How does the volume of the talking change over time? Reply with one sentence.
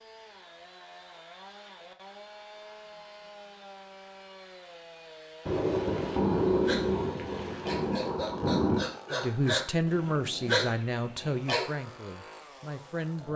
The loudness of the talking goes down.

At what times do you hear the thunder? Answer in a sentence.
The thunder can be heard from 5.5 to 8.8 s.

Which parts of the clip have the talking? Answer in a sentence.
You can hear the talking from 9.1 to 13.3 s.